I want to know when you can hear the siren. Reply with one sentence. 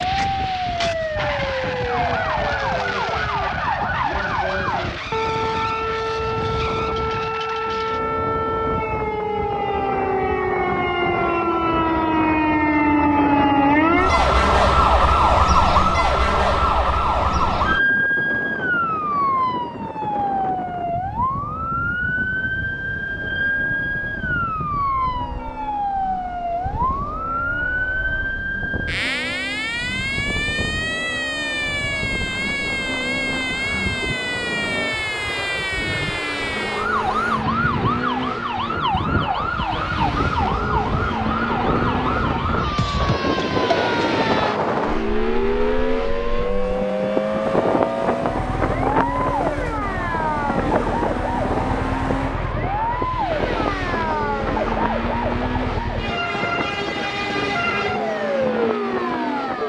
The siren can be heard from 0.0 to 59.6 s.